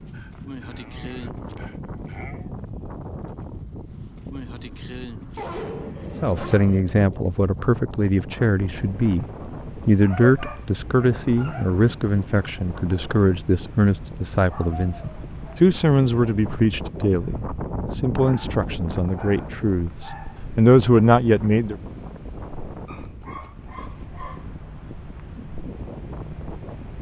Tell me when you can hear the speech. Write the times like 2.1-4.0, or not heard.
6.2-21.8.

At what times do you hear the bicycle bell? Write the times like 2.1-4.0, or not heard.
not heard.